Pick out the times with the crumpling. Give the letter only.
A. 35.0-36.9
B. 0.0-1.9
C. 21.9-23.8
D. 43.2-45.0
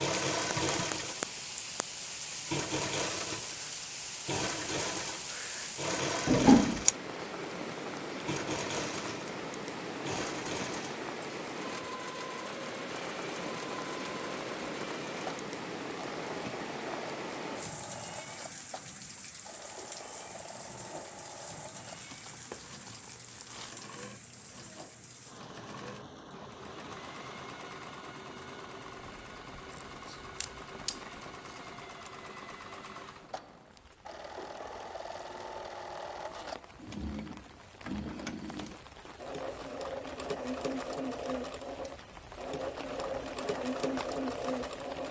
C.